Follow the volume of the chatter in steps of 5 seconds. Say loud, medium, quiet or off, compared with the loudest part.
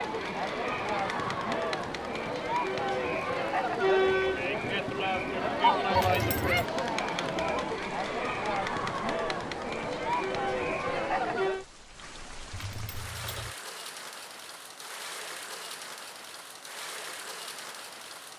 loud, loud, loud, off.